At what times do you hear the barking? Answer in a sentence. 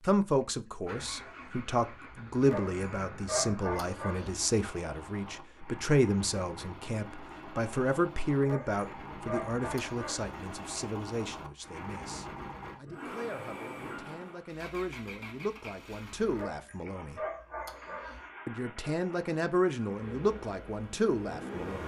The barking can be heard from 2.4 to 4.4 s, from 8.4 to 10.3 s and from 16.3 to 18.2 s.